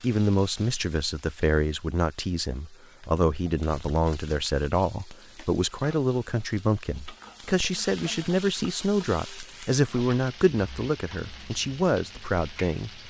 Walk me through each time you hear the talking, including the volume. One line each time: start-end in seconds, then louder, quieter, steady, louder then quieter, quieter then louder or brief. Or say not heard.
0.0-13.0 steady.